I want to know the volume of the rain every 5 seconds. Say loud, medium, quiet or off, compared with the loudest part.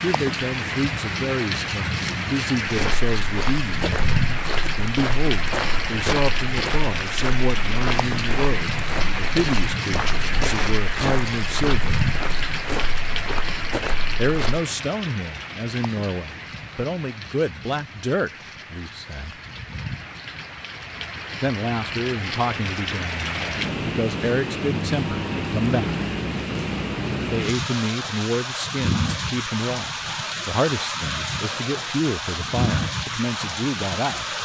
loud, loud, loud, medium, loud, loud, loud.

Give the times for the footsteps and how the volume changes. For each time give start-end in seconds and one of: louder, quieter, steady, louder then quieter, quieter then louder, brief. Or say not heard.
2.6-14.6 steady.